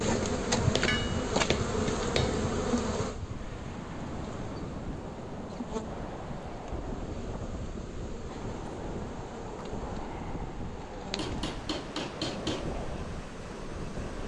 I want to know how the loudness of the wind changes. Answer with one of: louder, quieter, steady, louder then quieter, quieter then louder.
steady.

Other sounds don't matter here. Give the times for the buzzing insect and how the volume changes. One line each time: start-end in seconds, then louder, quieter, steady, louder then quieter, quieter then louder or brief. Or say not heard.
0.0-14.2 quieter.